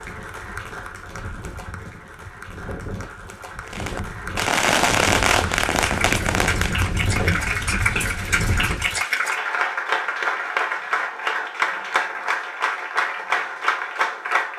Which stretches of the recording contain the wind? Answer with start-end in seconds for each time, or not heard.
0.0-9.0.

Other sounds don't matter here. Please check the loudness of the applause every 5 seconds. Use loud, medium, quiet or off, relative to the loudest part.
quiet, loud, loud.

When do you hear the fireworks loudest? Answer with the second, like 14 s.
5 s.